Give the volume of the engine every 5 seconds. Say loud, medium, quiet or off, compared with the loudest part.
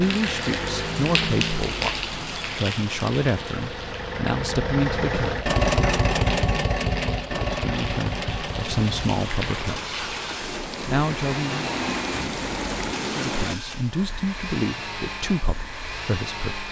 medium, loud, medium, medium.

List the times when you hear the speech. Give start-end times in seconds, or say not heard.
0.0-5.5, 7.3-9.9, 10.8-11.7, 13.1-16.6.